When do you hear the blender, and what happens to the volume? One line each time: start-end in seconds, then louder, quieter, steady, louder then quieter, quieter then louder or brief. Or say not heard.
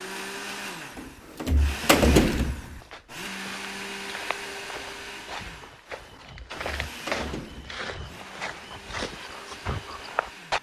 0.0-10.5 quieter.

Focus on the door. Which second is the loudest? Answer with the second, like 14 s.
2 s.